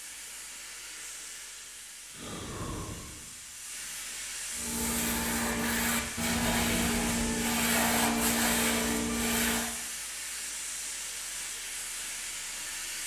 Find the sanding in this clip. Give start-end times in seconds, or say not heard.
4.5-9.7.